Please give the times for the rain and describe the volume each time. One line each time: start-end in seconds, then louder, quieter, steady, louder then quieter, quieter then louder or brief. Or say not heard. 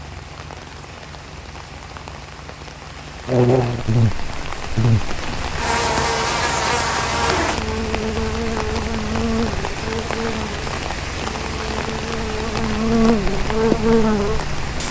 0.0-14.8 louder.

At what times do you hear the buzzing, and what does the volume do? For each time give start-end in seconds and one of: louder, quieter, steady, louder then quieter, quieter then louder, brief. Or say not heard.
3.2-14.8 quieter then louder.